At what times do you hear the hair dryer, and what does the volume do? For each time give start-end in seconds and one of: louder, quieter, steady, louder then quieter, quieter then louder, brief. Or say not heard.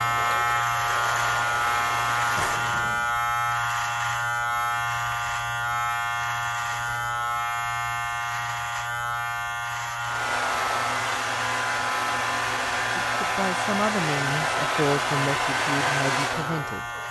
0.0-2.5 brief
10.1-17.0 steady.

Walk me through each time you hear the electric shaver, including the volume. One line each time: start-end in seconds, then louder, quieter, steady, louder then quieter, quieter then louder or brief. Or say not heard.
0.0-17.0 quieter.